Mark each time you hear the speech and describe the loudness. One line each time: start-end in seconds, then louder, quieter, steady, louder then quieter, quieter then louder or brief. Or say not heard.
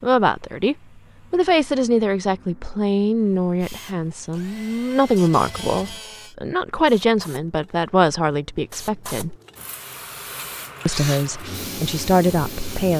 0.0-9.3 steady
10.8-12.9 brief.